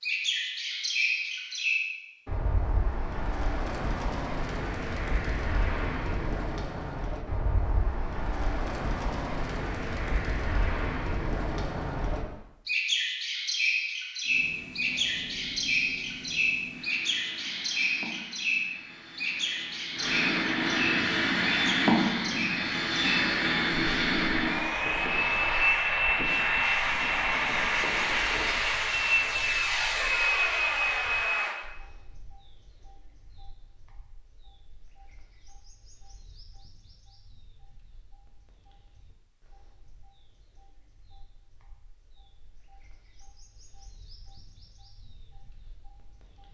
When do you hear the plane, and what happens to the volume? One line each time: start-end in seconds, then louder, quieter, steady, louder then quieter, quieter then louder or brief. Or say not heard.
14.2-31.6 louder.